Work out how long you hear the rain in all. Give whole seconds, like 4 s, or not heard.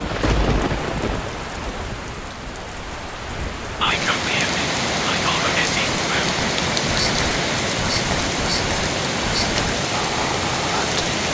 11 s.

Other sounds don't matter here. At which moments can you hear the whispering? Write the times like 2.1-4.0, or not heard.
3.8-11.1.